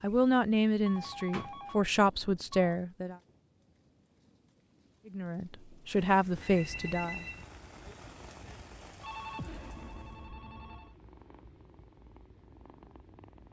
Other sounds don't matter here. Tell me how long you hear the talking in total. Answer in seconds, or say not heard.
5 s.